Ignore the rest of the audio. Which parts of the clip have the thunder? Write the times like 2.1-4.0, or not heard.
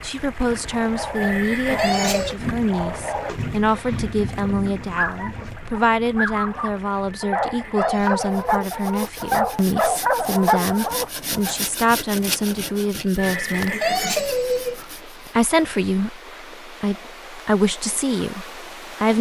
2.2-5.5.